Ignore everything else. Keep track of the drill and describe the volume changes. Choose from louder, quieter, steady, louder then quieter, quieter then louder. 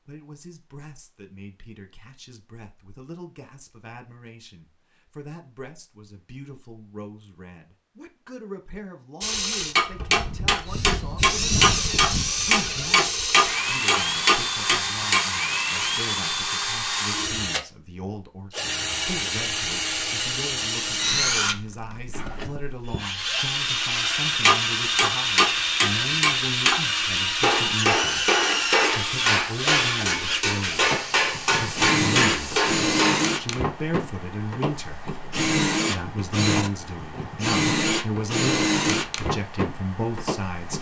steady.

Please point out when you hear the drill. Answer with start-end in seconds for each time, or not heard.
9.2-40.7.